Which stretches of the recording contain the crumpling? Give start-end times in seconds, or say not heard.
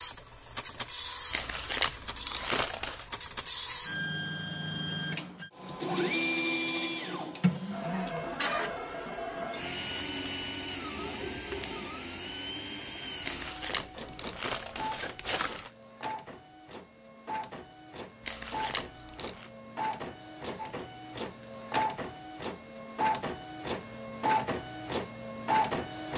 1.3-3.0, 13.2-15.7, 18.2-19.5.